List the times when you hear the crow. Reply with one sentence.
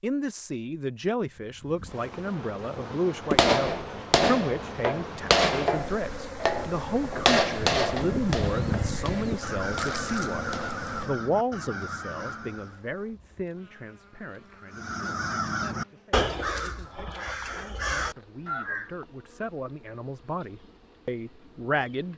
The crow can be heard from 7.5 to 12.8 s and from 14.7 to 18.9 s.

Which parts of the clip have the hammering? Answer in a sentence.
You can hear the hammering from 3.3 to 10.8 s.